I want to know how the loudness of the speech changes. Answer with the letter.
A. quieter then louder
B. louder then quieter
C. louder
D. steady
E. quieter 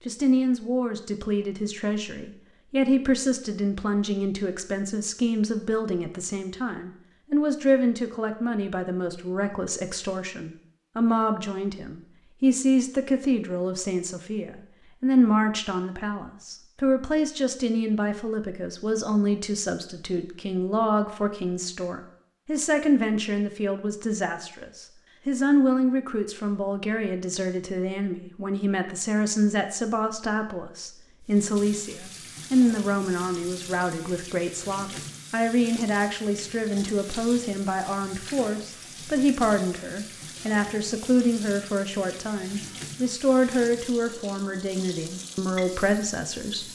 D.